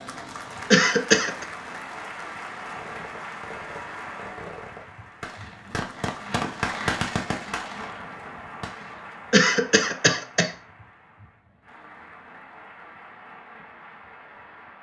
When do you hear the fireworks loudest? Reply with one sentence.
The loudest moment of the fireworks is at 7 seconds.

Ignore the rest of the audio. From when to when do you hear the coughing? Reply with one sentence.
You can hear the coughing from 0.7 to 1.4 s and from 9.3 to 10.5 s.